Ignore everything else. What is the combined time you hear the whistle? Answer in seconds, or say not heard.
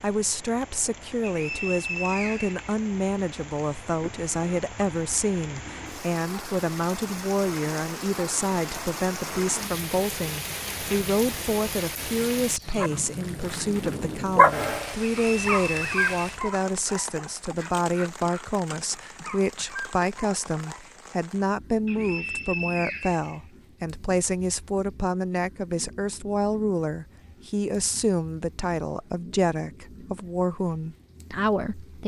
4 s.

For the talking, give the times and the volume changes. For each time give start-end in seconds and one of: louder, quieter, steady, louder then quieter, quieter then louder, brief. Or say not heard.
0.0-32.0 steady.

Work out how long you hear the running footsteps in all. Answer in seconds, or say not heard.
not heard.